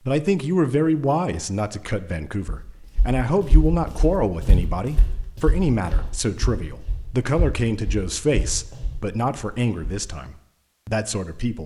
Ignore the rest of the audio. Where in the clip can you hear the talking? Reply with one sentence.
The talking can be heard from 0.1 to 11.6 s.